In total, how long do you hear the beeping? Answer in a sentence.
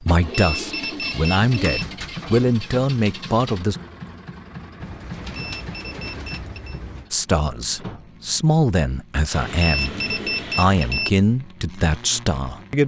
The beeping can be heard for 5 seconds in total.